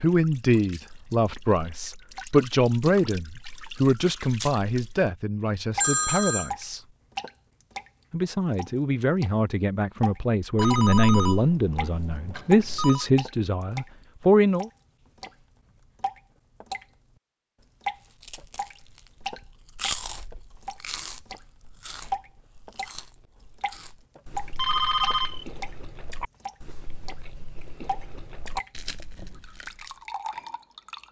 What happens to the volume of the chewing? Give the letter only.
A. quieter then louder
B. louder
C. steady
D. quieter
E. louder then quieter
A.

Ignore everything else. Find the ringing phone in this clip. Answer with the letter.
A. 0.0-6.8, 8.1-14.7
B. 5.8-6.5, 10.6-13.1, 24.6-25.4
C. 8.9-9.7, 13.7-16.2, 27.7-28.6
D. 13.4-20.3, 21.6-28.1
B.